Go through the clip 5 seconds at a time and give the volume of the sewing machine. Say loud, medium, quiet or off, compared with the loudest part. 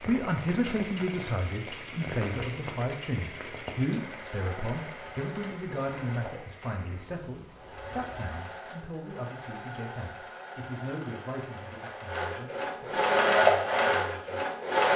quiet, quiet, loud.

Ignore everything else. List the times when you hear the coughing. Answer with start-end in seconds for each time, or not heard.
not heard.